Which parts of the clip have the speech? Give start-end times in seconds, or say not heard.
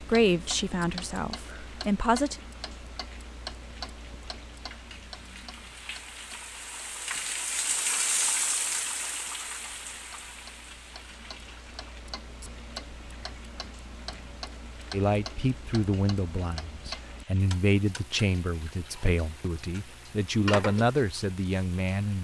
0.1-2.4, 14.9-22.1.